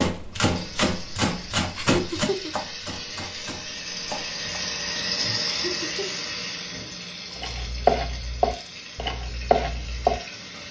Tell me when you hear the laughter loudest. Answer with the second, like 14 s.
2 s.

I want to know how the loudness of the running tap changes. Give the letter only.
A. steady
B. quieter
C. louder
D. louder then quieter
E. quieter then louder
D.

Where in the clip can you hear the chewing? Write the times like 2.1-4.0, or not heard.
not heard.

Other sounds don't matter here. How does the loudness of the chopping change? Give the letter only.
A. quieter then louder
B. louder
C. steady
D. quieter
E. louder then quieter
A.